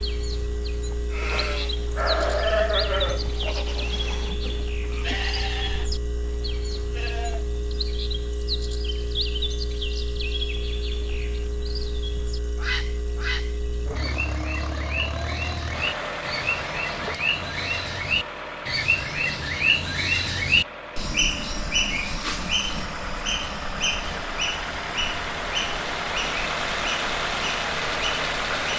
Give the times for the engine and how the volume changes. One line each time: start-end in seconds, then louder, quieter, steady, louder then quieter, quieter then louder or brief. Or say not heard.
0.0-28.7 louder.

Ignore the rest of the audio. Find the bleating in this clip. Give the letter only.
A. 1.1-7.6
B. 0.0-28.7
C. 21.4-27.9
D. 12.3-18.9
A.